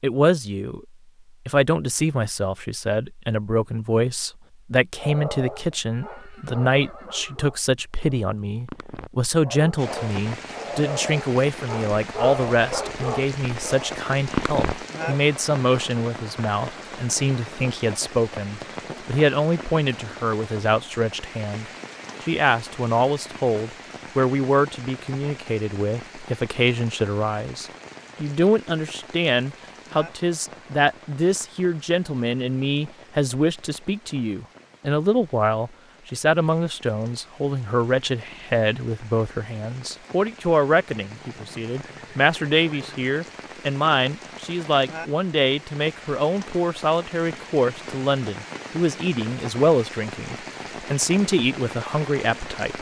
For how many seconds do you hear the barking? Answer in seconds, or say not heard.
10 s.